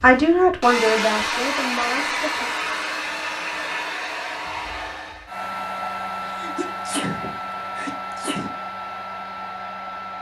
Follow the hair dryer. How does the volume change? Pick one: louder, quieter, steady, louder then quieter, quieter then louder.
quieter.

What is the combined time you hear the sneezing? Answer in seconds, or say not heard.
2 s.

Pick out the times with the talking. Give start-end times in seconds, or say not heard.
0.0-2.5.